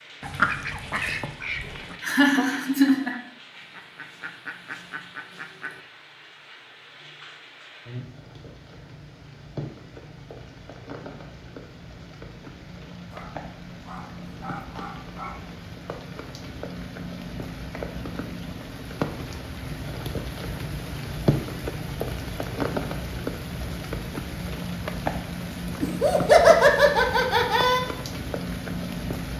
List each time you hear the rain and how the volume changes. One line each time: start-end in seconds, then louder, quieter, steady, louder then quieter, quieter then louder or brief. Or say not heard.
0.0-29.3 louder.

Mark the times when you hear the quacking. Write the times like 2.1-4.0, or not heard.
0.2-5.8.